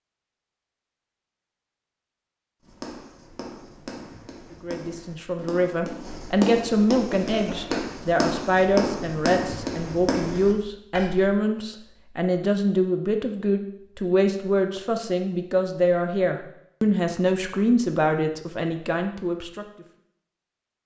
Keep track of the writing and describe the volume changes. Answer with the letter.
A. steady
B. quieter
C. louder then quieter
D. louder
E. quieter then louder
D.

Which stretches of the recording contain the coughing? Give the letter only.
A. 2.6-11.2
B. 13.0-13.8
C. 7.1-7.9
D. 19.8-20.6
C.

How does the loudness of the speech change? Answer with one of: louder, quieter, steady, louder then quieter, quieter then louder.
steady.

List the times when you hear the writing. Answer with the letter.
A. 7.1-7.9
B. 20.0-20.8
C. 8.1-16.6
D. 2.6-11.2
D.